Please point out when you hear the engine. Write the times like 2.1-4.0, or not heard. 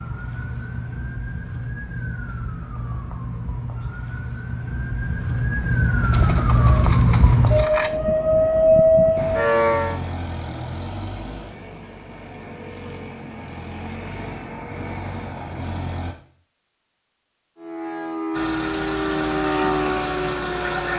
9.2-16.1, 18.3-20.9.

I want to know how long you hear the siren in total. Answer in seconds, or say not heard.
13 s.